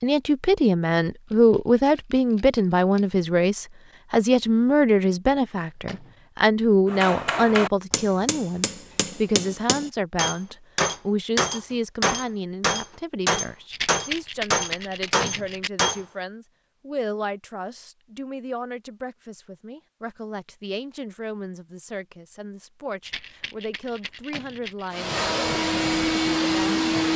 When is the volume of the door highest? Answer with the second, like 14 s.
15 s.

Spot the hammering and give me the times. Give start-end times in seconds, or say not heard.
6.8-16.0.